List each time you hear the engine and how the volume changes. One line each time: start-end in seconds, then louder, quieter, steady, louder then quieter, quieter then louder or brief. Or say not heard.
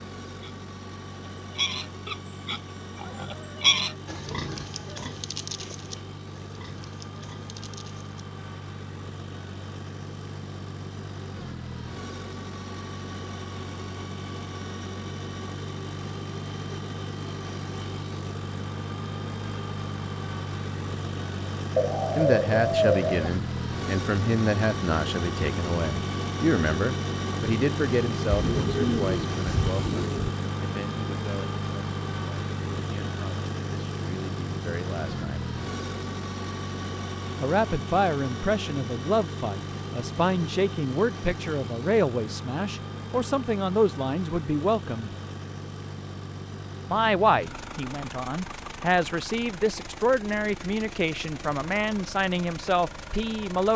0.0-53.7 louder then quieter.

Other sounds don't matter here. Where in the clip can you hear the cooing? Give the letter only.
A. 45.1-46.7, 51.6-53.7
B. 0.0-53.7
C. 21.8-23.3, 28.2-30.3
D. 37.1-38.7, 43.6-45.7
C.